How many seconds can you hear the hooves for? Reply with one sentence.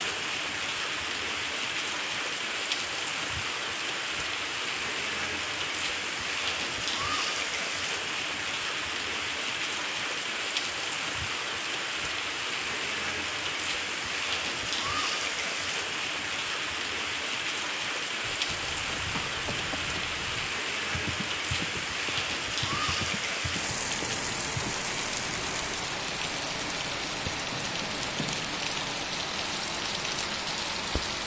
You can hear the hooves for 8 seconds altogether.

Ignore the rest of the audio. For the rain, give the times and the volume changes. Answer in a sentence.
The rain can be heard from 0.0 to 31.2 s, at a steady volume.